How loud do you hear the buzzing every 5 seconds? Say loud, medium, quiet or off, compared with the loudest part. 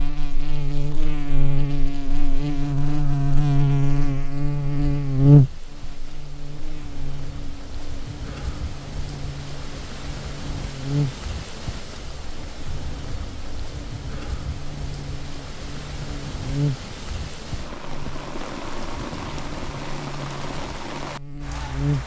loud, loud, medium, medium, medium.